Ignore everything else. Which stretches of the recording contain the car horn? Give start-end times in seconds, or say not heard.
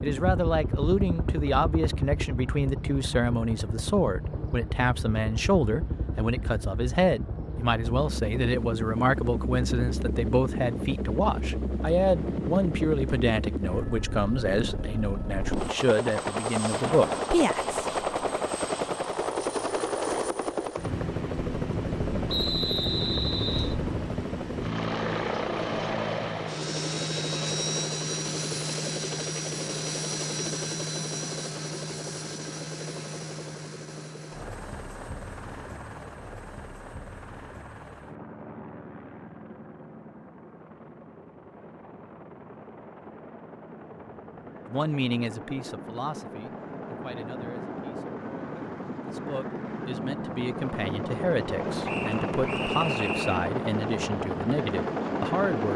not heard.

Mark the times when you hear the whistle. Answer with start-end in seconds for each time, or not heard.
22.2-23.8, 51.9-53.5.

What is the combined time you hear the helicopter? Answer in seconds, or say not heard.
56 s.